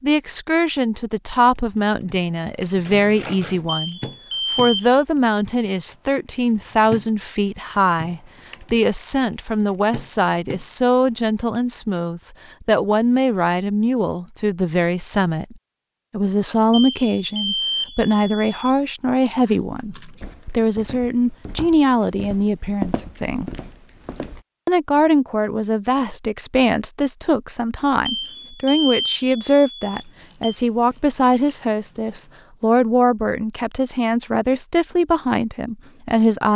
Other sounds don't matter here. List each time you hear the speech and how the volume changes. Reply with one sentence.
You can hear the speech from 0.0 to 23.5 s, at a steady volume; and from 24.6 to 36.5 s, at a steady volume.